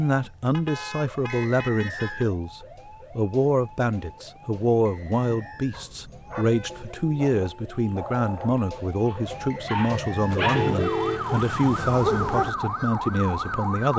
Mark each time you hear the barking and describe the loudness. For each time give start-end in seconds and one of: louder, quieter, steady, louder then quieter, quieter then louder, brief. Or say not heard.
5.7-12.5 quieter then louder.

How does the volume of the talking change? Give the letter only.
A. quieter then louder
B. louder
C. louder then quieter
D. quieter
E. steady
E.